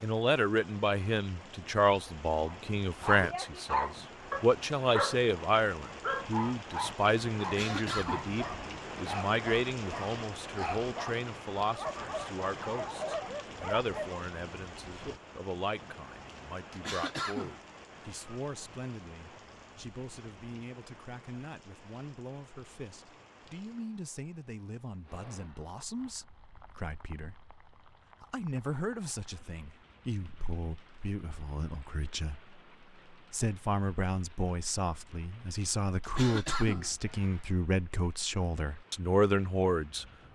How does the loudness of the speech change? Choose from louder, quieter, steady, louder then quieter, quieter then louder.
quieter then louder.